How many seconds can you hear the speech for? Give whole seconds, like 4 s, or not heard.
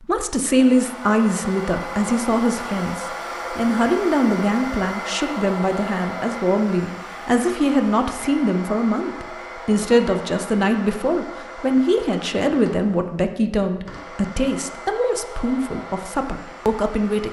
17 s.